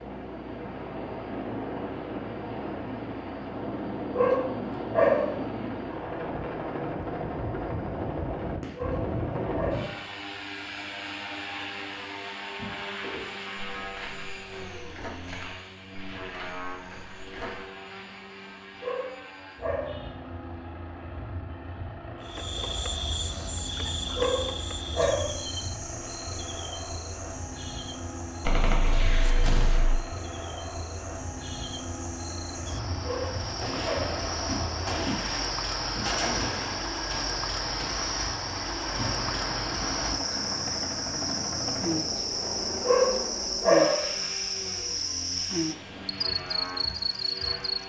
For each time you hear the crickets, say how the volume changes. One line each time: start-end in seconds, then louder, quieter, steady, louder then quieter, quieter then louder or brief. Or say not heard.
22.2-47.8 quieter then louder.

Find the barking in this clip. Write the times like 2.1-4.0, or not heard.
4.2-5.3, 8.8-9.9, 18.8-20.0, 24.1-25.4, 33.0-34.2, 42.9-44.0.